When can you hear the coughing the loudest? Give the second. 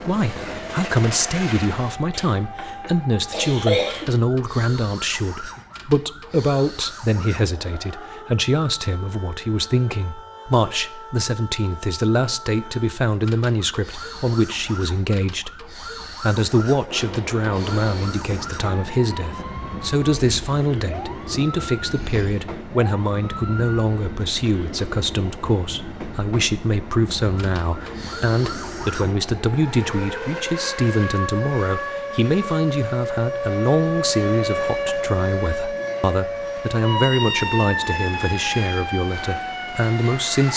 4 s.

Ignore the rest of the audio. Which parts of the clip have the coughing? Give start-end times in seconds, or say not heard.
2.1-4.1.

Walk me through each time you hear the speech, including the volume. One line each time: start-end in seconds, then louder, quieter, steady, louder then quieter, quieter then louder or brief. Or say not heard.
0.1-40.5 steady.